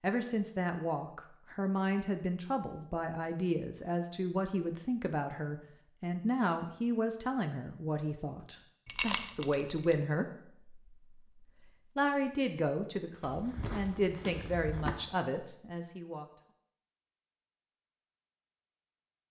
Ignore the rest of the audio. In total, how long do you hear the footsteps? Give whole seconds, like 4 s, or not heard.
2 s.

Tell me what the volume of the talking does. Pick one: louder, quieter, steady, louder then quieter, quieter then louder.
steady.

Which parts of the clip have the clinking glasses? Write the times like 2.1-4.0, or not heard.
8.8-9.6.